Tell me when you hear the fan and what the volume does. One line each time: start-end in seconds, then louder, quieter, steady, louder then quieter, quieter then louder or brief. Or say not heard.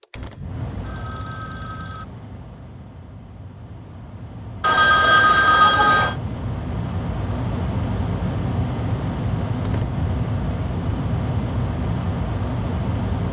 0.0-13.2 louder.